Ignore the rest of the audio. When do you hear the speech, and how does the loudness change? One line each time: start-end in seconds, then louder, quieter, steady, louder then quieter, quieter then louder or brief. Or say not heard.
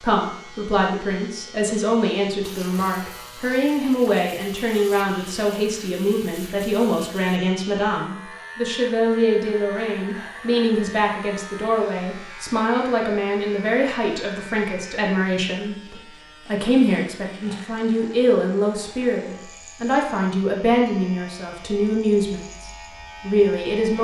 0.0-23.9 steady.